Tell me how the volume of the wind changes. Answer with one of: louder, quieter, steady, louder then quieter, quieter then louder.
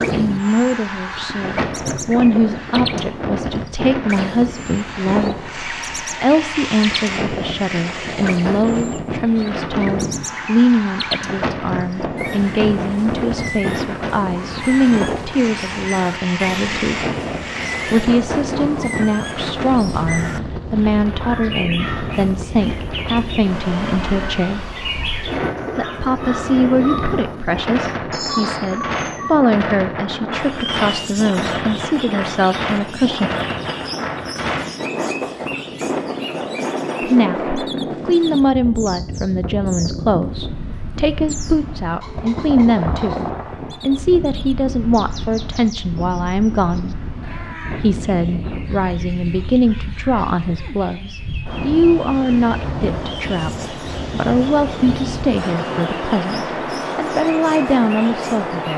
steady.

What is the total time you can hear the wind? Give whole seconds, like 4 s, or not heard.
59 s.